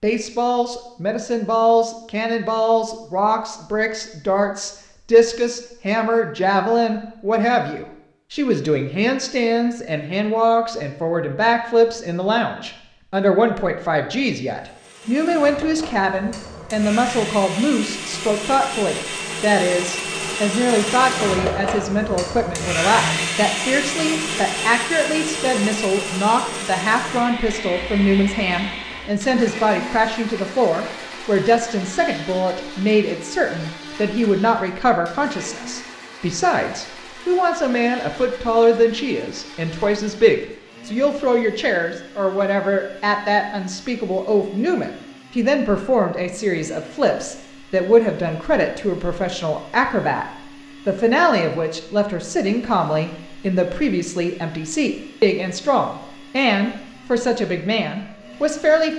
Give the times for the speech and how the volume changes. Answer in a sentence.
You can hear the speech from 0.0 to 50.2 s, at a steady volume; and from 50.9 to 58.9 s, at a steady volume.